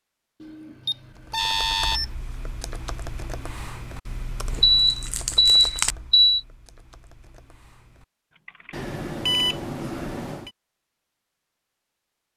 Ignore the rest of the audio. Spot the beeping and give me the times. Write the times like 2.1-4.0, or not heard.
0.4-2.0, 4.6-6.4, 8.7-10.5.